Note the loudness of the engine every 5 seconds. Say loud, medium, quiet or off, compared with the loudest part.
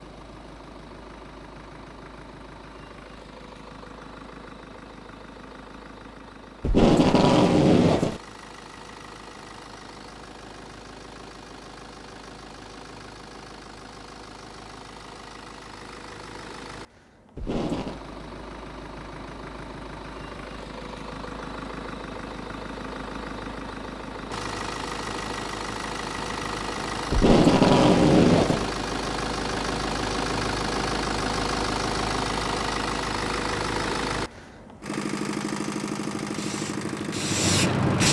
quiet, quiet, quiet, quiet, medium, loud, loud, loud.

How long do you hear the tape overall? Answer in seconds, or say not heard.
4 s.